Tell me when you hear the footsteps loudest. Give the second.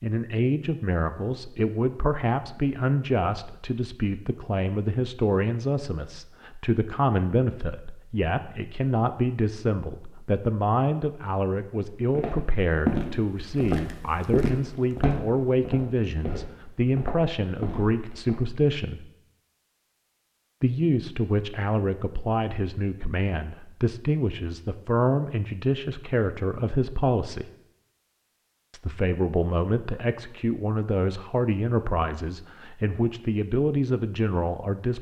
13 s.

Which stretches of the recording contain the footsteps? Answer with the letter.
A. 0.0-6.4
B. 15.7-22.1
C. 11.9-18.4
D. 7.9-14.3
C.